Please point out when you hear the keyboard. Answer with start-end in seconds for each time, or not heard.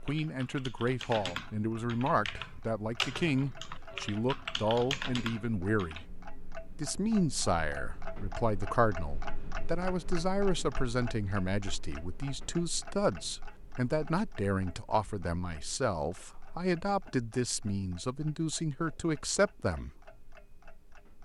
0.0-6.0.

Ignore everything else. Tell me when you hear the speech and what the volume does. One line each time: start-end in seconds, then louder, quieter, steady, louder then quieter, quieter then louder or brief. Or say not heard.
0.1-6.0 steady
6.8-19.9 steady.